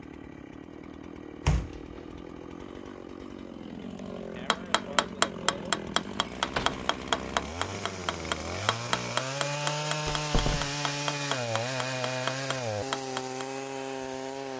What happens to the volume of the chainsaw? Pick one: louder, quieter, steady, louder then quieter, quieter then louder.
louder.